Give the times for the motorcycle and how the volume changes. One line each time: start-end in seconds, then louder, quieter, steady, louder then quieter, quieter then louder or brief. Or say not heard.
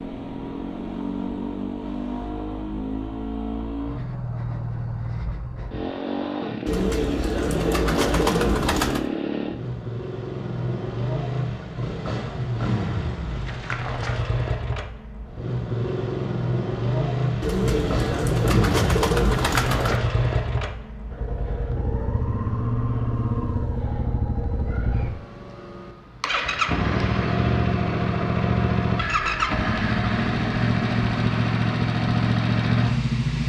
0.0-33.4 louder.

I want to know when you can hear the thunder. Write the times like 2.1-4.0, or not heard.
not heard.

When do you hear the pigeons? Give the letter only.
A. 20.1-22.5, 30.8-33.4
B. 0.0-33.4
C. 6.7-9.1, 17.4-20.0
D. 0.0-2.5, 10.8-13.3
C.